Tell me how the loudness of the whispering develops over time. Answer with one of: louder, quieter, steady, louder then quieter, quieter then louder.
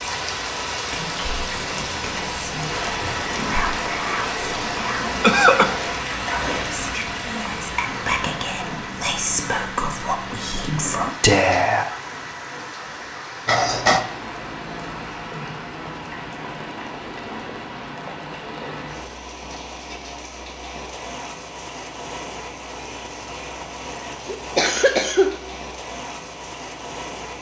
louder.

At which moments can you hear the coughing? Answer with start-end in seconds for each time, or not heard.
4.7-5.8, 13.4-14.1, 24.2-25.4.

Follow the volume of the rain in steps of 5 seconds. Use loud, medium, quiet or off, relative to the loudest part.
loud, loud, medium, medium, medium, medium.